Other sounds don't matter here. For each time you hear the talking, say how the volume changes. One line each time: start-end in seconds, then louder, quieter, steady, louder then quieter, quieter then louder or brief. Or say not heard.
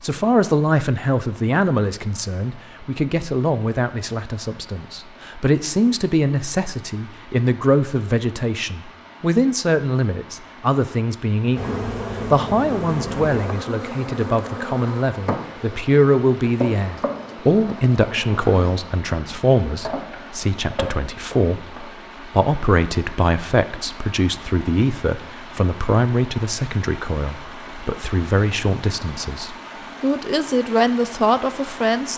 0.0-32.1 steady.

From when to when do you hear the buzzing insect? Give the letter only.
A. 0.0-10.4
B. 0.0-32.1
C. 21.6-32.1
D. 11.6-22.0
D.